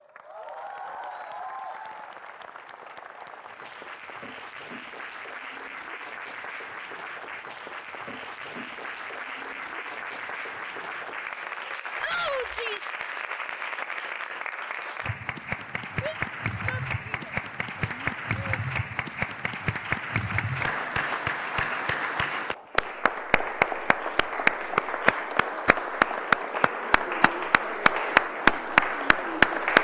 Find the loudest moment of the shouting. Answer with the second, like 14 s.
12 s.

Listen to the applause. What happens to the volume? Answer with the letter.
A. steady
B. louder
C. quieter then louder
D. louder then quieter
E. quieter
B.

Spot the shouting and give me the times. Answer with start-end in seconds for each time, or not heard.
12.0-12.9, 16.0-18.6.